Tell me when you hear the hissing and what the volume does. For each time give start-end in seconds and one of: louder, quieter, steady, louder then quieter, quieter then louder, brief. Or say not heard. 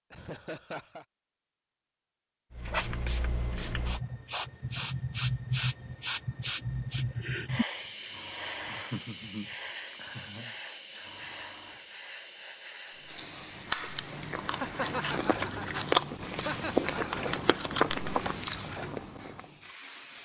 2.5-20.2 quieter.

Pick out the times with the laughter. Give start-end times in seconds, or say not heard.
0.1-1.1, 8.7-11.2, 14.6-16.9.